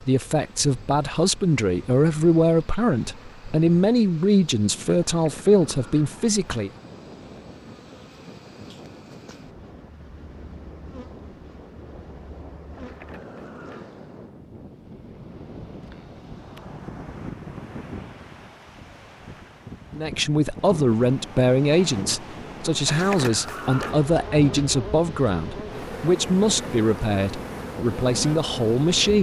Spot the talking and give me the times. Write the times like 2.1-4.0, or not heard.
0.1-6.7, 19.9-29.1.